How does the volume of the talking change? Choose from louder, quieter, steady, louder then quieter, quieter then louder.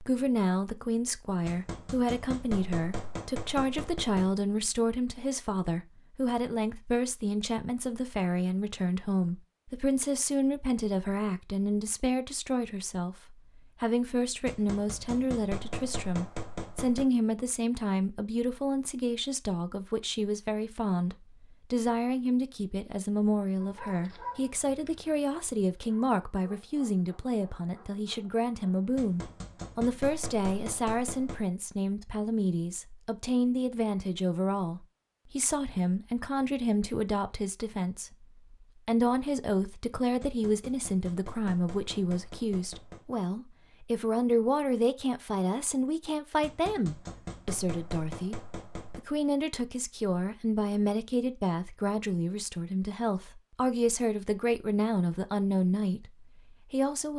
steady.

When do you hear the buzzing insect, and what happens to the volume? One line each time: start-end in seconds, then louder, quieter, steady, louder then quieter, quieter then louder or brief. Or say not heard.
not heard.